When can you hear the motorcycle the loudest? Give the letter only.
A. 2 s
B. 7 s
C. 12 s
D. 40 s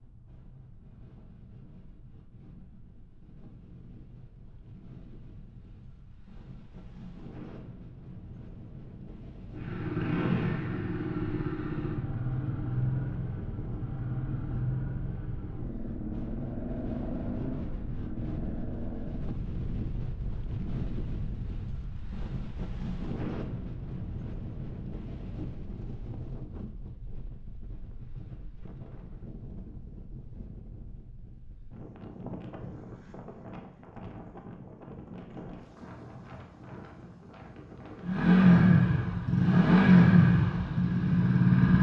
D.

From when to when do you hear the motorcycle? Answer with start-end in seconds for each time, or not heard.
9.6-19.3, 38.0-41.7.